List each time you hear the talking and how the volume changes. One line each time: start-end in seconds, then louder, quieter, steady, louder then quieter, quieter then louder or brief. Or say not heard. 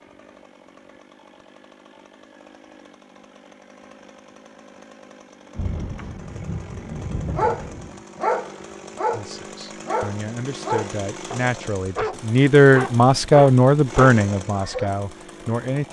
9.1-15.8 louder then quieter.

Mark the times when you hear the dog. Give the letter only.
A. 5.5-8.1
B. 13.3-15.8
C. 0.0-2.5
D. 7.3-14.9
D.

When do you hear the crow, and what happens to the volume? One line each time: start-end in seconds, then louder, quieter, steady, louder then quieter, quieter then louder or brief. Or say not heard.
not heard.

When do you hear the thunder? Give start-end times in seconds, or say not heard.
5.5-8.1.